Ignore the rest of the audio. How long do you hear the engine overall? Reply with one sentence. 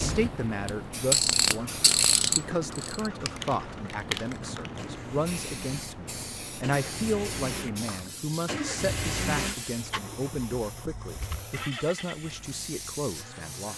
You can hear the engine for 12 seconds altogether.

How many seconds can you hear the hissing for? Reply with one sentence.
You can hear the hissing for 14 seconds altogether.